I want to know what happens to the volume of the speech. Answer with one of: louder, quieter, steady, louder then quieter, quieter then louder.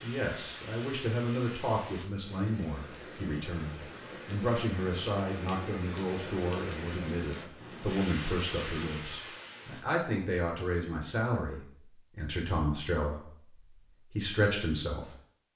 steady.